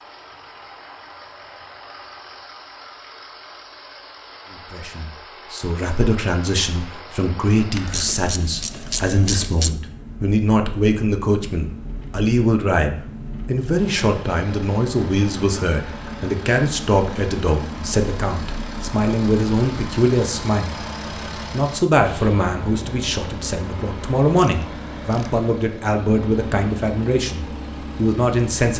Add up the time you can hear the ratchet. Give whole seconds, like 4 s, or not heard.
3 s.